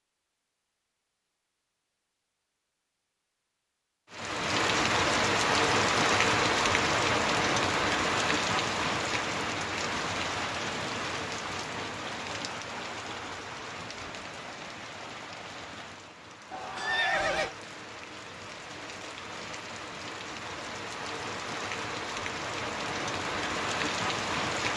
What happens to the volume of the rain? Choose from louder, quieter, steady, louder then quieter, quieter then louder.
quieter then louder.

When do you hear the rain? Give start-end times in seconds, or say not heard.
4.1-24.7.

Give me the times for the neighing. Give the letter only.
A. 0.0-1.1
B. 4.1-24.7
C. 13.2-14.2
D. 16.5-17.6
D.